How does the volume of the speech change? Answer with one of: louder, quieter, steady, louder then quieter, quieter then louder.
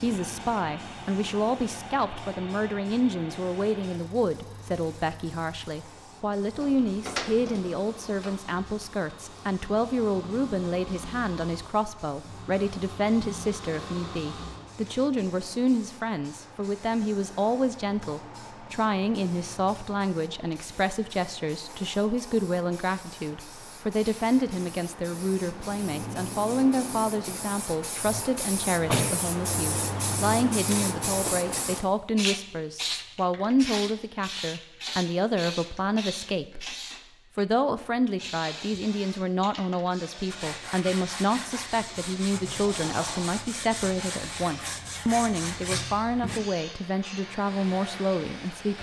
steady.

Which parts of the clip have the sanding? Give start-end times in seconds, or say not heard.
40.2-46.4.